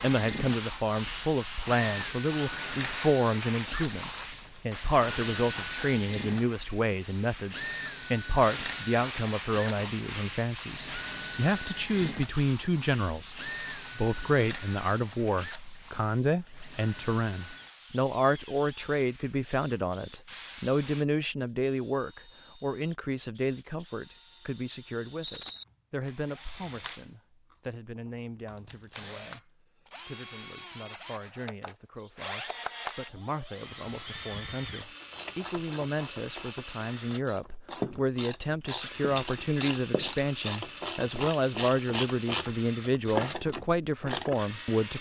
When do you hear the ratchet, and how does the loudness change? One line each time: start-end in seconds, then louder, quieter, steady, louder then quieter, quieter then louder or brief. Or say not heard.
35.0-44.5 louder.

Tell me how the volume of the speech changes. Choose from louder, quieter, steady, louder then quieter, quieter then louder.
quieter then louder.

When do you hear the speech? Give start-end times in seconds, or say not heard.
0.0-44.9.